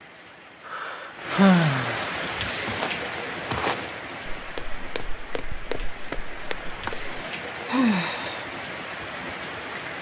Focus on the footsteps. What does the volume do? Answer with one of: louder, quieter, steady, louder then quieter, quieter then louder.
quieter then louder.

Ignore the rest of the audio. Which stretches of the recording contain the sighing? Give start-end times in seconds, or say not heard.
0.7-2.1, 6.8-8.4.